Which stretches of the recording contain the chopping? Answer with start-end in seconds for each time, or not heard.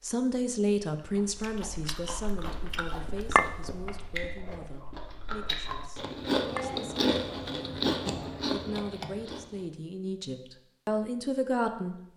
not heard.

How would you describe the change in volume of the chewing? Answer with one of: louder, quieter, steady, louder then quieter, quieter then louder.
louder.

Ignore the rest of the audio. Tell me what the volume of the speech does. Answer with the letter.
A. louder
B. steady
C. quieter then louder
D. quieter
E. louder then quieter
C.